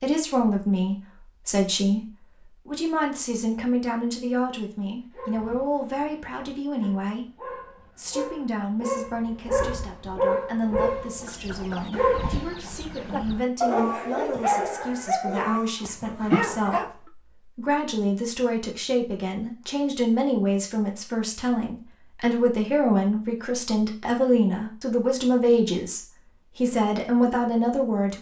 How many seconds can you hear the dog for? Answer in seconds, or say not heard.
12 s.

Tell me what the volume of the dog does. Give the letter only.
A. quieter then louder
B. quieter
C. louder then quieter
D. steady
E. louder
E.